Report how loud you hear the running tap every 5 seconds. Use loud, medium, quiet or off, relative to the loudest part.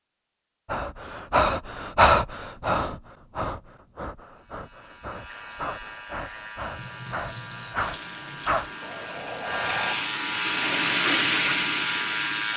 off, medium, loud.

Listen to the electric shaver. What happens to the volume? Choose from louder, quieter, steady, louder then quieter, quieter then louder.
louder.